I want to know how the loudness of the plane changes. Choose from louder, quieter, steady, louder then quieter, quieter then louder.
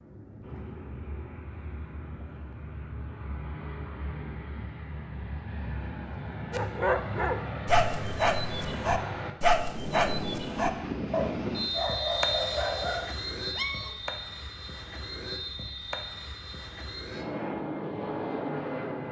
louder.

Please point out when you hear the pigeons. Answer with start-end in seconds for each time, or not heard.
not heard.